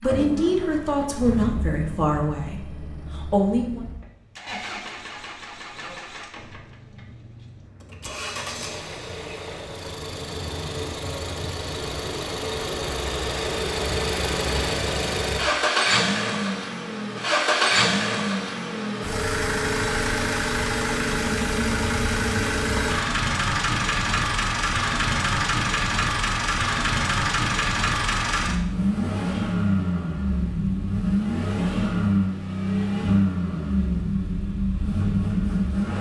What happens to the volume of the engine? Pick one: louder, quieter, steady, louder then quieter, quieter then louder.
louder.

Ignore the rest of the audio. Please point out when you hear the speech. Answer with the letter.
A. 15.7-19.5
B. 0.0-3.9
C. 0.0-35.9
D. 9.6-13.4
B.